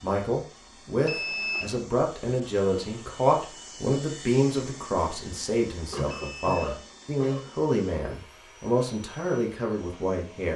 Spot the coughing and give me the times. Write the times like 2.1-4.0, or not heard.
5.9-7.5.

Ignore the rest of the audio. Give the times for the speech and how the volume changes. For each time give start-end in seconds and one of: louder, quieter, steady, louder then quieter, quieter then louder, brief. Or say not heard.
0.0-10.5 steady.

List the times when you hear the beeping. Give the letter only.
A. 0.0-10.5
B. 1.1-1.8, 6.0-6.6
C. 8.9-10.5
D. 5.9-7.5
B.